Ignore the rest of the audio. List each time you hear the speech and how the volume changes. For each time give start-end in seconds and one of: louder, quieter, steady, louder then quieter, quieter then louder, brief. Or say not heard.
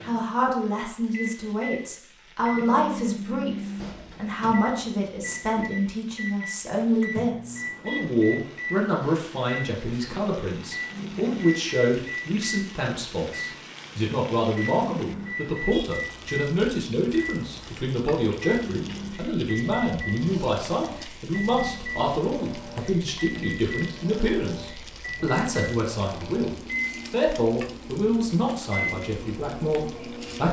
0.0-30.4 steady.